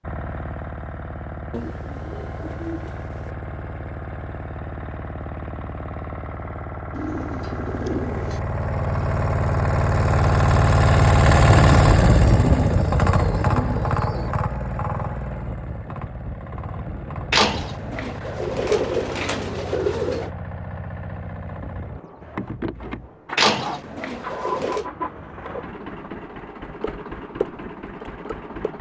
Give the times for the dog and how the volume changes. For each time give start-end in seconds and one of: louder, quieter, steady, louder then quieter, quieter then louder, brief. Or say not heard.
not heard.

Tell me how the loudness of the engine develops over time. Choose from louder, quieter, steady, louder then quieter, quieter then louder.
louder then quieter.